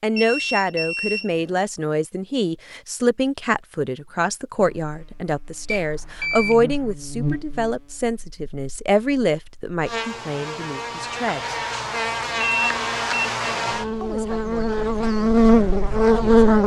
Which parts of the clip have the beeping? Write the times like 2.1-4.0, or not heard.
0.1-1.6, 5.7-6.9, 12.4-13.3.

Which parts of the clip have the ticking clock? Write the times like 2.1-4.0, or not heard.
not heard.